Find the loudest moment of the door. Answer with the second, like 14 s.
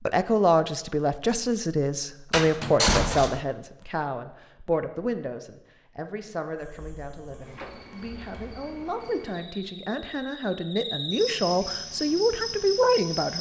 3 s.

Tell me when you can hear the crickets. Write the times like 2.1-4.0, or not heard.
6.5-13.3.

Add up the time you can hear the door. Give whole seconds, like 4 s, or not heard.
2 s.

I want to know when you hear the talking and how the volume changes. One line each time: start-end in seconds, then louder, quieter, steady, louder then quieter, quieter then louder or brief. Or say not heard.
0.1-13.3 quieter then louder.